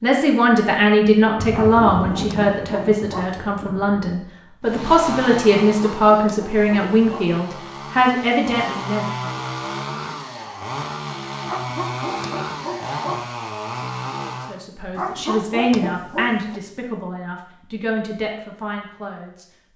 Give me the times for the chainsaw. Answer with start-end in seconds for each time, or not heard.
4.6-14.6.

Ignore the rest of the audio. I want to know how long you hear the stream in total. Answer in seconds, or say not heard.
not heard.